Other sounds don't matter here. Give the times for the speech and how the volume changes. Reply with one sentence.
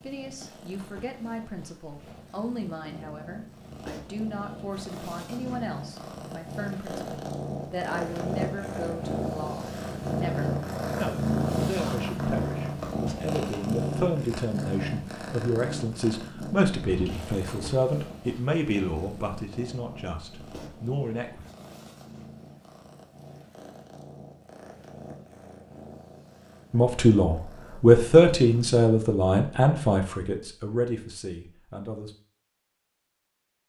You can hear the speech from 0.0 to 21.4 s, getting louder; and from 26.7 to 32.1 s, getting quieter.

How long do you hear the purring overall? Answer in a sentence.
You can hear the purring for 29 seconds altogether.